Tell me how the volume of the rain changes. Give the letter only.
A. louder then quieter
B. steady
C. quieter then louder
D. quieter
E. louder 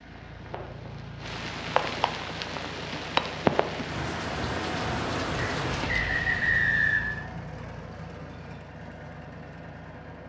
A.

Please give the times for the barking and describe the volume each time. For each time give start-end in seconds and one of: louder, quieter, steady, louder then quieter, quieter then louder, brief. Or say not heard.
not heard.